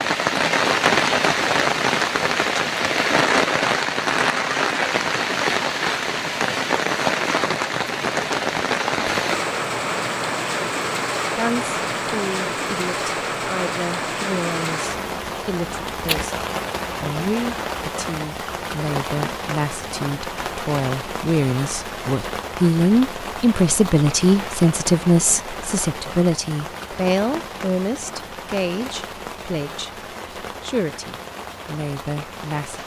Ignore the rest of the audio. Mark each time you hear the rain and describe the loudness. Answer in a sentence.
You can hear the rain from 0.0 to 32.8 s, getting quieter.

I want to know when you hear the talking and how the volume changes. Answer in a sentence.
The talking can be heard from 11.3 to 32.8 s, getting louder then quieter.